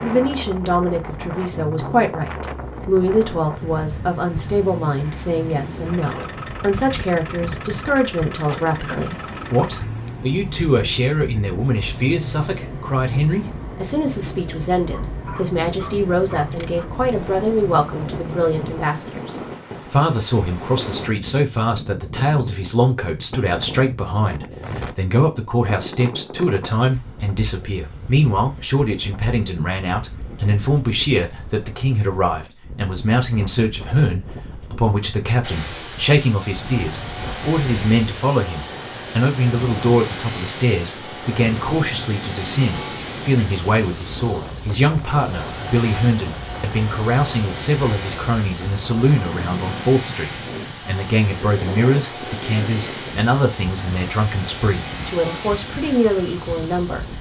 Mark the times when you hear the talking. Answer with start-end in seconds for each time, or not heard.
0.0-57.0.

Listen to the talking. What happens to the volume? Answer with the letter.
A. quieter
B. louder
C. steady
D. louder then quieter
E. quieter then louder
C.